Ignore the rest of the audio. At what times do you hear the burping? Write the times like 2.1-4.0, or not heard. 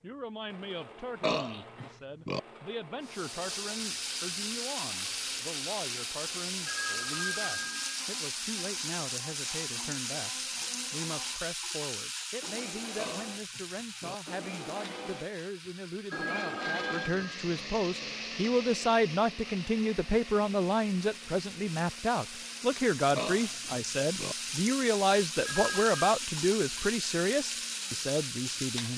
1.2-2.4, 12.9-14.2, 23.1-24.4.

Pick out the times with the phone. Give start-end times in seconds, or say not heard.
6.7-8.0, 16.1-17.4, 25.4-26.0.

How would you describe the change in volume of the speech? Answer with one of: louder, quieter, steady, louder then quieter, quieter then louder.
louder.